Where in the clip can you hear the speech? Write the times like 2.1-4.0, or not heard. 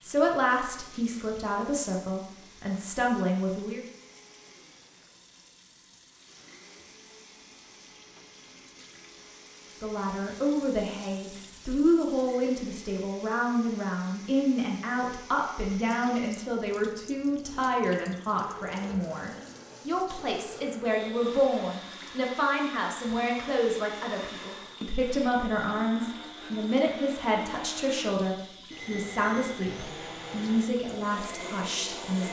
0.0-3.9, 9.8-32.2.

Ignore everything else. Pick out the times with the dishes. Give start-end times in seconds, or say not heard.
not heard.